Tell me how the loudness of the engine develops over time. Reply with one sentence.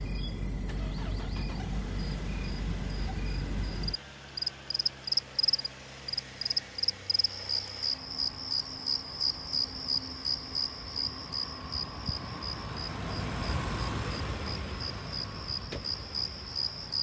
The loudness of the engine goes up.